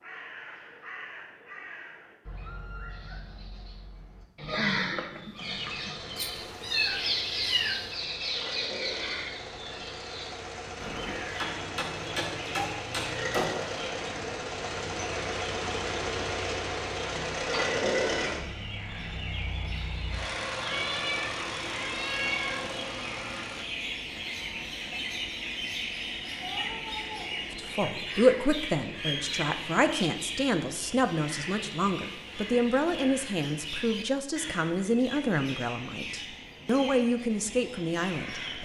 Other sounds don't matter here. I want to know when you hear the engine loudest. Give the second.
18 s.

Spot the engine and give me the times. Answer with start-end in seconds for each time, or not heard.
5.3-23.6.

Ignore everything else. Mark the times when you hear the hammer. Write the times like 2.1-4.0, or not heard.
11.3-13.7.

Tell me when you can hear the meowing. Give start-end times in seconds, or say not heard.
6.2-7.9, 20.6-22.8, 26.4-28.1.